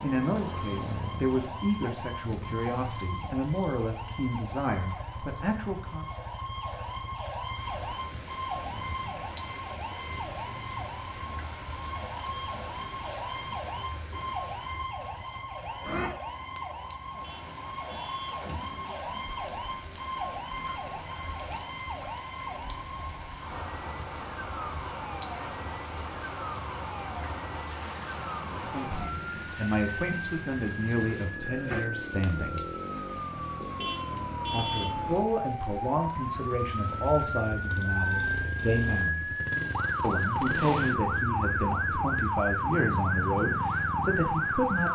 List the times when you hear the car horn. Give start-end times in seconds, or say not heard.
17.2-18.2, 33.8-34.9.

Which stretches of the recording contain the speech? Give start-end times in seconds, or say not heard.
0.0-6.1, 28.6-32.6, 34.5-39.4, 40.0-44.9.